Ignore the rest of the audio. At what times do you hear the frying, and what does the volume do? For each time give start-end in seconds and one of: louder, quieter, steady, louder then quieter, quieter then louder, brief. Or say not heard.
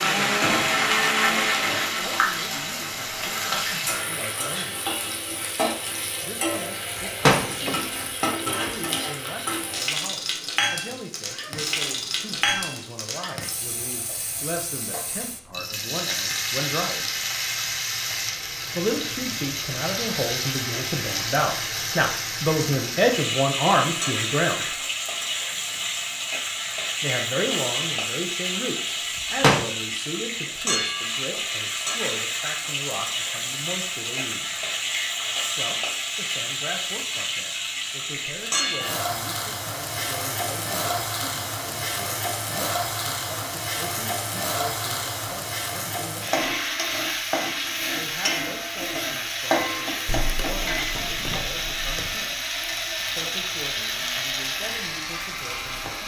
0.0-56.0 steady.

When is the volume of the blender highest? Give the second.
1 s.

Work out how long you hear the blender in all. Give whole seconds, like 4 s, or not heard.
5 s.